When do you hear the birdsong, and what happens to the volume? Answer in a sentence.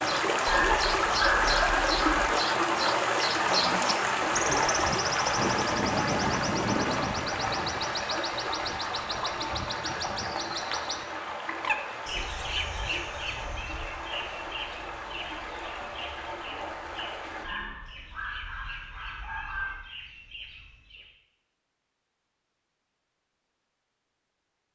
The birdsong can be heard from 0.0 to 21.1 s, getting quieter.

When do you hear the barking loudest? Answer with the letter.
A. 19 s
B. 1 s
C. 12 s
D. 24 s
B.